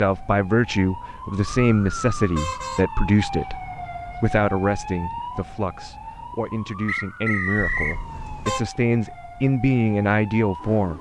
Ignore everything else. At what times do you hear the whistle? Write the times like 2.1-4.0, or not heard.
6.8-8.0.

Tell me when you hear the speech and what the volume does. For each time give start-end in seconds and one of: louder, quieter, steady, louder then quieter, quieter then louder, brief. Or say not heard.
0.0-10.9 quieter then louder.